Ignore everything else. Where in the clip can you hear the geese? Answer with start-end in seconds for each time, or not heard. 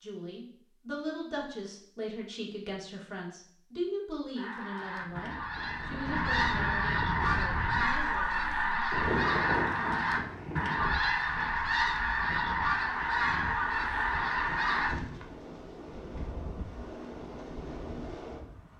4.3-14.9.